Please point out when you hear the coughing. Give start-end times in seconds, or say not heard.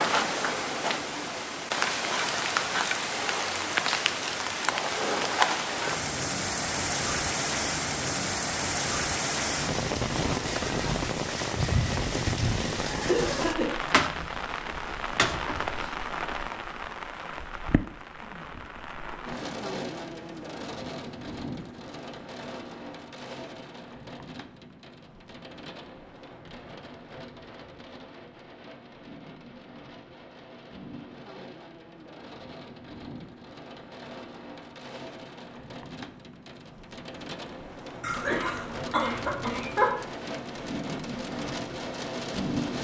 12.6-13.7, 38.0-40.0.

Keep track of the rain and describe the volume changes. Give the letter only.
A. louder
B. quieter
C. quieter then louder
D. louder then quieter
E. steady
C.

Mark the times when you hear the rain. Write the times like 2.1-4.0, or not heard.
0.0-42.7.